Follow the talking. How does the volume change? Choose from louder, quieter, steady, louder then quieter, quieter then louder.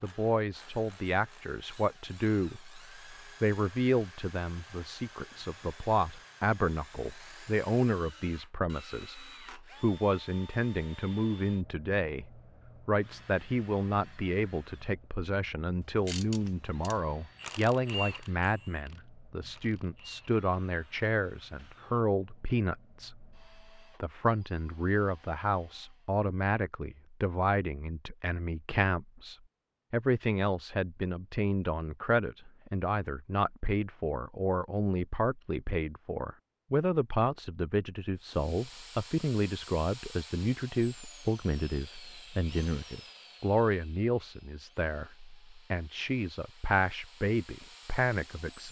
steady.